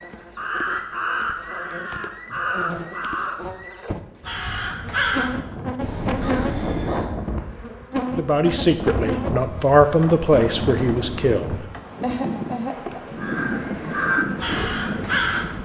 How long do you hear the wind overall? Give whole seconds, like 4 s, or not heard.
10 s.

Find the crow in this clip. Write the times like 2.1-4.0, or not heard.
0.0-7.2, 13.2-15.5.